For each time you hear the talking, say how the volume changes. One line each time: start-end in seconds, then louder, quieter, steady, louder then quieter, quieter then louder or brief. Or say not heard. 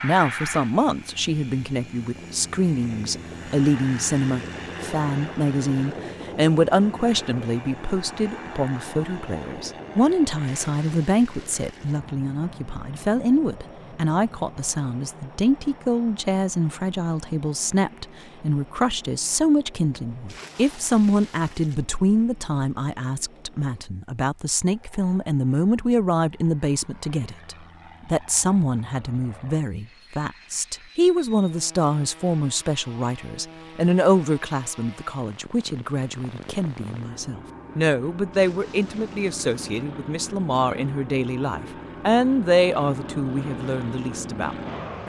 0.0-45.0 steady.